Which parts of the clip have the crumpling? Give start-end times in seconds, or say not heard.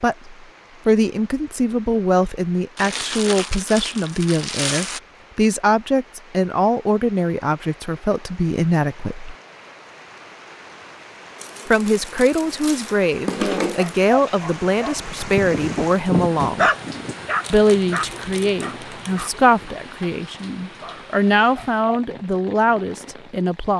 2.8-5.0, 11.3-14.1, 17.4-19.3.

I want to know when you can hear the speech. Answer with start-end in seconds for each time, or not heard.
0.0-9.3, 11.7-16.7, 17.5-23.7.